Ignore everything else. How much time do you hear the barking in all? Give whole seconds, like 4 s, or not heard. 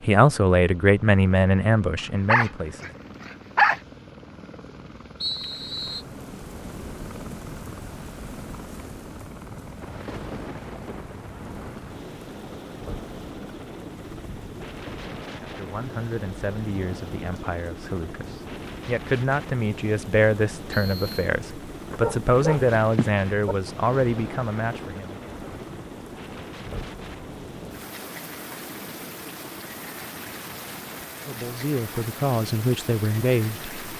3 s.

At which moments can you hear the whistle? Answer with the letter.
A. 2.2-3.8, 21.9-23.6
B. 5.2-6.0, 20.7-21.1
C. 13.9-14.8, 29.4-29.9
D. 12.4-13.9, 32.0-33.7
B.